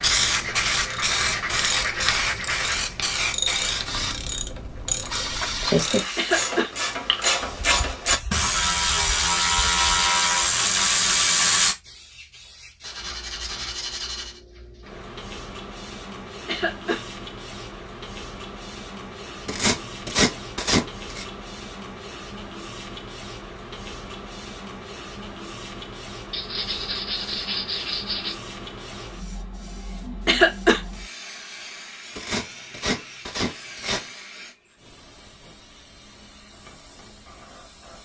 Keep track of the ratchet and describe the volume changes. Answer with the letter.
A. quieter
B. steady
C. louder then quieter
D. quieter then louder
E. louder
E.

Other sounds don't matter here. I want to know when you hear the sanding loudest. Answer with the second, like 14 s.
20 s.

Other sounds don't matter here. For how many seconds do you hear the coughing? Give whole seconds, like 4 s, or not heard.
2 s.